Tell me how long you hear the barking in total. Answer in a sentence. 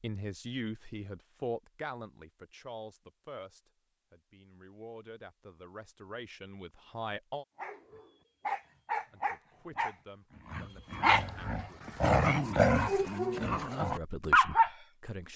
You can hear the barking for 7 seconds altogether.